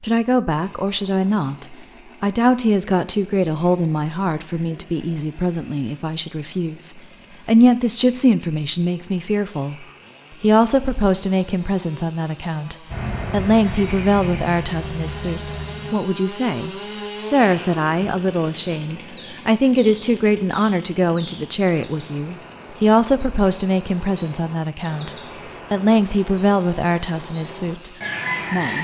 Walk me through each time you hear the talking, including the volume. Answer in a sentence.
You can hear the talking from 0.0 to 28.7 s, at a steady volume.